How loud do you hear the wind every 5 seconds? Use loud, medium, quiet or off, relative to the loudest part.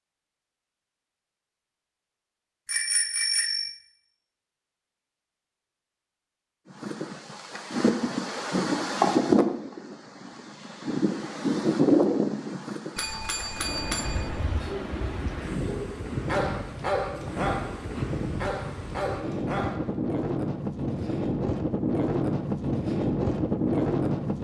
off, loud, loud, medium, loud.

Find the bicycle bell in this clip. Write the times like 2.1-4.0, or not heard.
2.6-3.7, 12.9-14.7.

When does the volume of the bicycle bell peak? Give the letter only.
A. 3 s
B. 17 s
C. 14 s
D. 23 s
A.